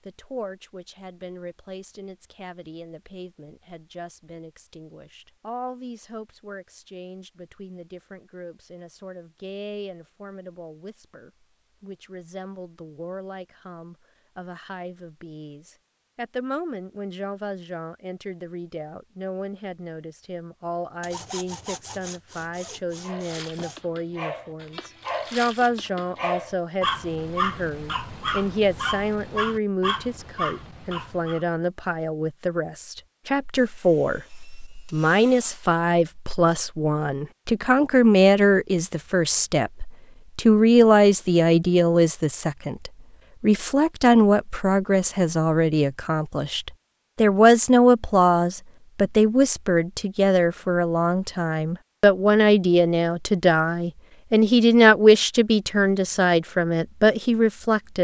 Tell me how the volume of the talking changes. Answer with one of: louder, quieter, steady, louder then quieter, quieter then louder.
louder.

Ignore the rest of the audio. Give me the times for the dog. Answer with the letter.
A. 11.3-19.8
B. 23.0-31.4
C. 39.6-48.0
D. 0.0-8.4
B.